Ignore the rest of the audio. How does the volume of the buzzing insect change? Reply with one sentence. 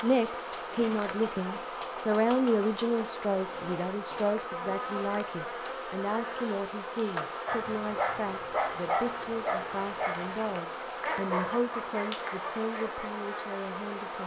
The volume of the buzzing insect stays about the same.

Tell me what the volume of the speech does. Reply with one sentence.
The volume of the speech goes down.